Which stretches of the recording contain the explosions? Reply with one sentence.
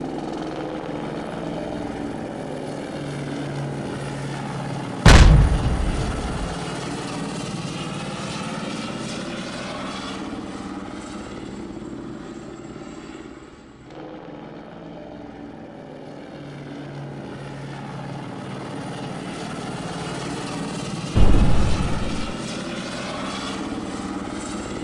The explosions can be heard from 5.0 to 6.5 s and from 21.1 to 22.1 s.